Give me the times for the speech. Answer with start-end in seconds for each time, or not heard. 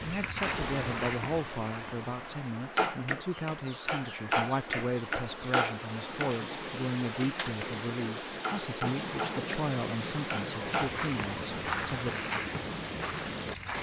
0.0-12.2.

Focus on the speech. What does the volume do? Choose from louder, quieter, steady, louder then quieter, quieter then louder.
steady.